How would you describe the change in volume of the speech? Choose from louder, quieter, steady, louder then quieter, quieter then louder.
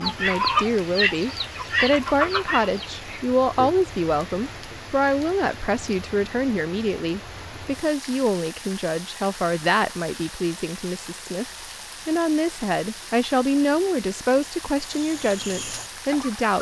steady.